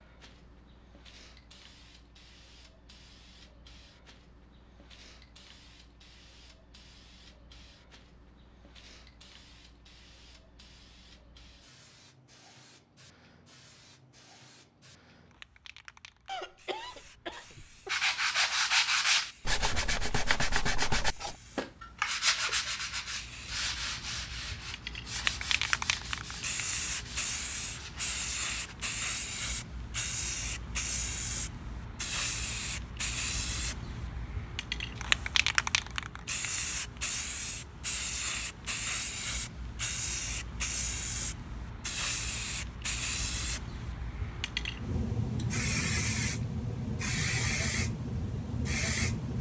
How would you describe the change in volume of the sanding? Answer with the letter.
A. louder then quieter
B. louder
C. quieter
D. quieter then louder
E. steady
C.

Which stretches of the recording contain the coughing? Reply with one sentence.
You can hear the coughing from 16.2 to 17.9 s.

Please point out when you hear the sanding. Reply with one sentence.
You can hear the sanding from 17.9 to 28.8 s.